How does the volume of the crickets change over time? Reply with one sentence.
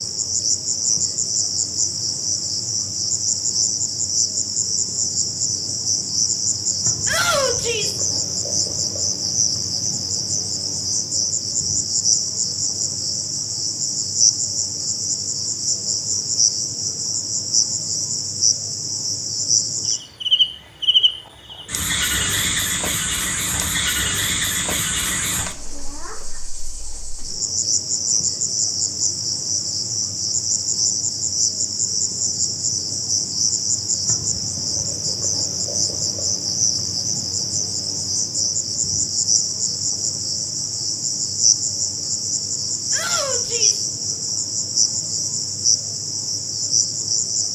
The loudness of the crickets stays about the same.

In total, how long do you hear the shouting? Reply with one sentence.
You can hear the shouting for 2 seconds altogether.